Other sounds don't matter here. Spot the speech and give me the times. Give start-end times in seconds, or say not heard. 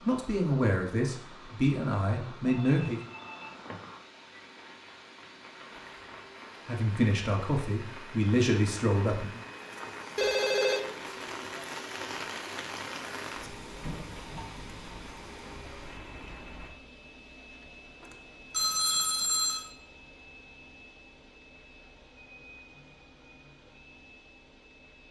0.0-3.0, 6.7-9.4.